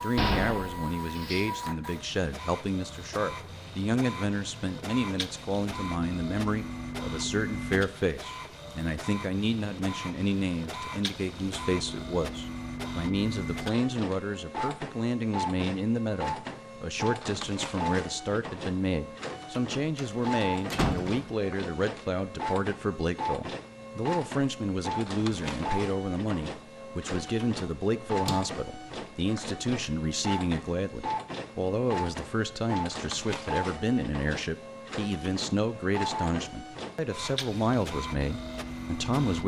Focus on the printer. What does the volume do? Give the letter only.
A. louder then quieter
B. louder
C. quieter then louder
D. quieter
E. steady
E.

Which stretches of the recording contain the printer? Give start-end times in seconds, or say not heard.
0.0-39.4.